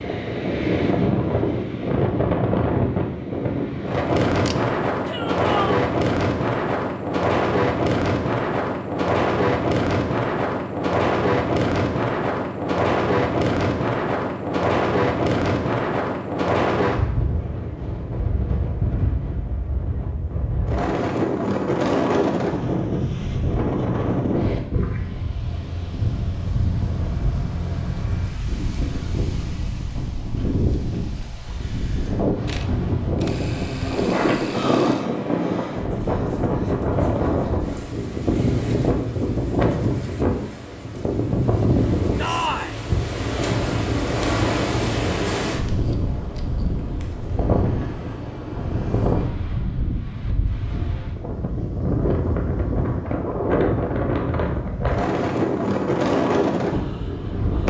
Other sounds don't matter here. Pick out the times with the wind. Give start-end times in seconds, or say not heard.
0.0-57.6.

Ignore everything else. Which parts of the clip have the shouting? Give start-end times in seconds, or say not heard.
5.0-5.8, 42.1-42.8.